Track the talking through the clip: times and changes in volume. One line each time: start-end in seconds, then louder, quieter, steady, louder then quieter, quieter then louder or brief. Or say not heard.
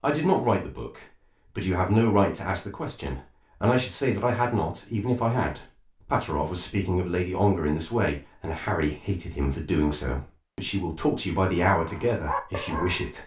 0.0-13.2 steady.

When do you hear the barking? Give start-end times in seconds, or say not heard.
11.7-13.2.